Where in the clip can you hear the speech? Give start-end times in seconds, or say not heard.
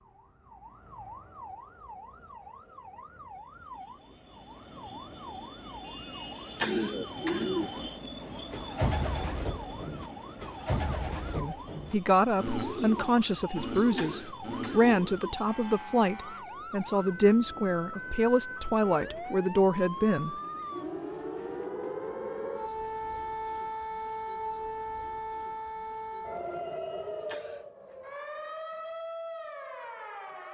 11.3-20.4.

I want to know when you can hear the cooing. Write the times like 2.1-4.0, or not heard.
6.6-15.3.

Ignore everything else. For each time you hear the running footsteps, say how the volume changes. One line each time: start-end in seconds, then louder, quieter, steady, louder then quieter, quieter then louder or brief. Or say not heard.
not heard.